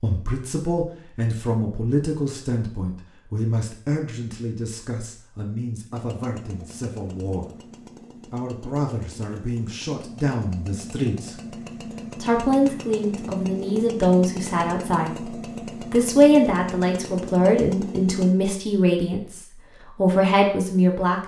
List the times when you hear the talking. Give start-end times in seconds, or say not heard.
0.0-7.5, 8.2-11.6, 12.2-21.2.